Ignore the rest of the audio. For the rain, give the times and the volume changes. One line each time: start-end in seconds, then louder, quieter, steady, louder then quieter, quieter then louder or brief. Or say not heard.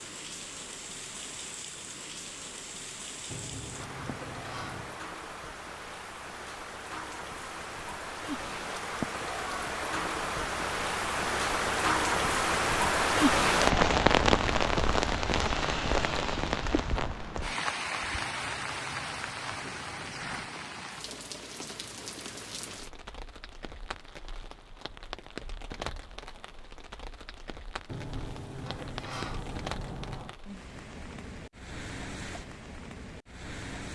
0.0-33.9 louder then quieter.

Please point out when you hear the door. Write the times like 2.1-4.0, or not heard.
3.3-5.0, 18.2-20.5, 27.9-30.4.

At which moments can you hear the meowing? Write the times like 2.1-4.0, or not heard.
not heard.